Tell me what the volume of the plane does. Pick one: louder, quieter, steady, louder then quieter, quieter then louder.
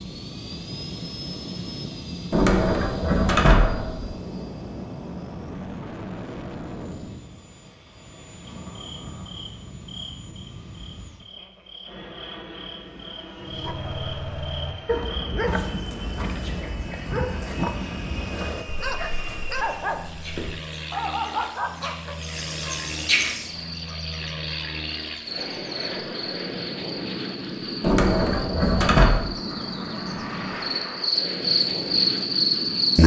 quieter then louder.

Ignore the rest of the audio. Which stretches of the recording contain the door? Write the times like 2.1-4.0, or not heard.
2.3-4.1, 15.4-16.4, 27.8-29.2.